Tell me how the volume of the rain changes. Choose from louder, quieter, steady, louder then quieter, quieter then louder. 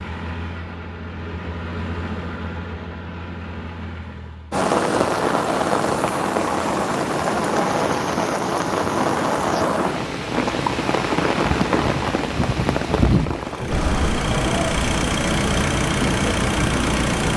steady.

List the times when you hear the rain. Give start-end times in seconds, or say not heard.
4.5-17.3.